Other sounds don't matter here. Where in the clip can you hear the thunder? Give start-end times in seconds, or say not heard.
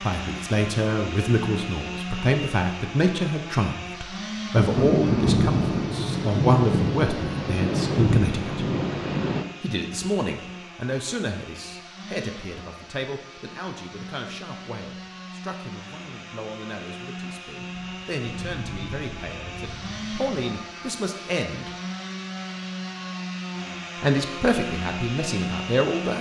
4.5-9.4, 17.6-20.4.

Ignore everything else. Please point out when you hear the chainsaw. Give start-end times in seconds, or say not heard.
0.0-26.1.